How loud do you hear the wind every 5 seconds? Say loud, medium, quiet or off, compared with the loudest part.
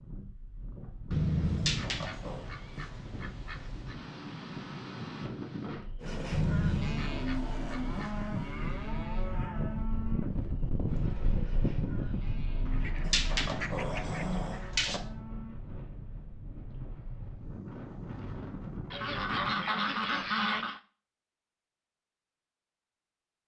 medium, loud, loud, medium, off.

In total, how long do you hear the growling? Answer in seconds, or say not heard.
3 s.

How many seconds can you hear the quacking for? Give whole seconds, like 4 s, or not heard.
9 s.